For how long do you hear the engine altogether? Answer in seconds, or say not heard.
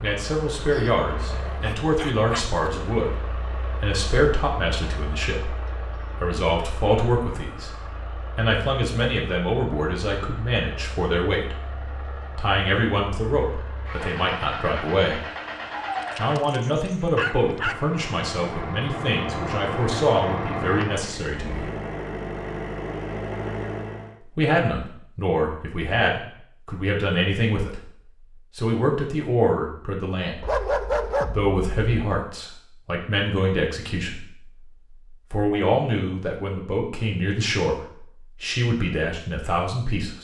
24 s.